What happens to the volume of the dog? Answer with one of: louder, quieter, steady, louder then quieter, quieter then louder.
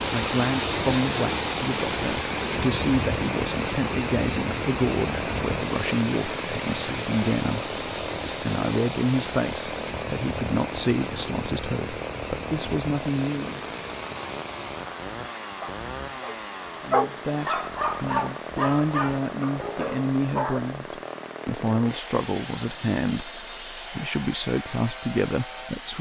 louder then quieter.